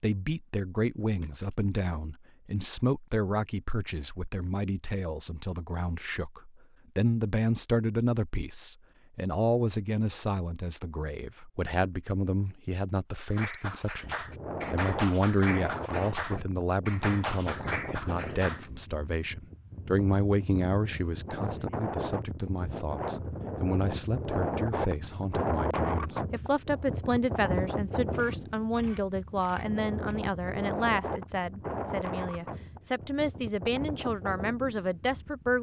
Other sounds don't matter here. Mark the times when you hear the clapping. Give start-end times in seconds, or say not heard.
13.2-18.6.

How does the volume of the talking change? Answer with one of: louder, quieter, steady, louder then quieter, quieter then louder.
steady.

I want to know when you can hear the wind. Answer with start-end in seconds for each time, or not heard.
13.9-35.5.